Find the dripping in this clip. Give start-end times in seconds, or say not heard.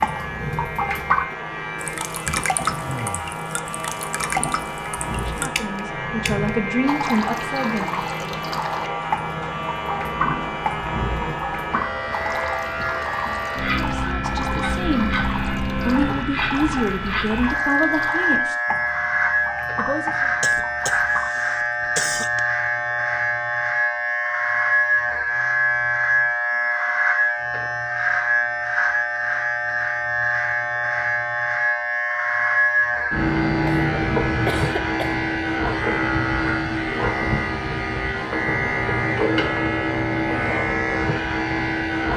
0.0-21.5.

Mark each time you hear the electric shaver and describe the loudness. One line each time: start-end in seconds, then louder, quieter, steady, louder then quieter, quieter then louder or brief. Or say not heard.
0.0-42.1 louder.